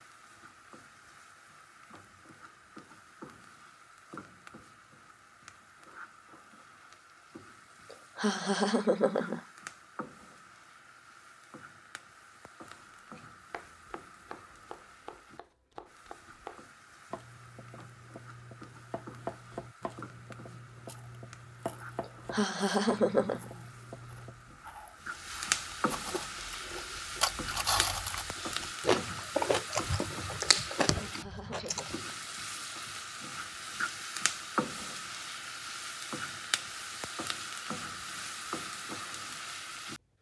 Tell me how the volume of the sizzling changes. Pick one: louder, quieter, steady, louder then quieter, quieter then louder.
louder.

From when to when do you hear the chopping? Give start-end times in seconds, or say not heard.
12.7-24.5.